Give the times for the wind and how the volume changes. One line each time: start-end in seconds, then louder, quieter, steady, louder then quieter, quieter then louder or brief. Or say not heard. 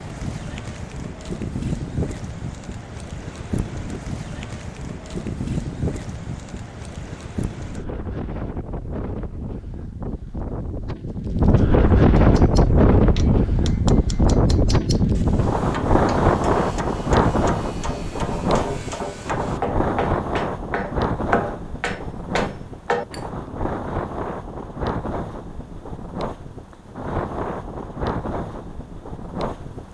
0.0-29.8 louder then quieter.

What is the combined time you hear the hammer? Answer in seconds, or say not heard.
11 s.